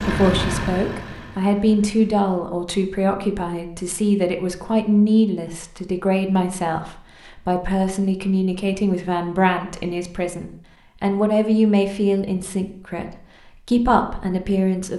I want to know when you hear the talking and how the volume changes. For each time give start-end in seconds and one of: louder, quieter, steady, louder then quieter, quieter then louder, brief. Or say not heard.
0.0-14.9 steady.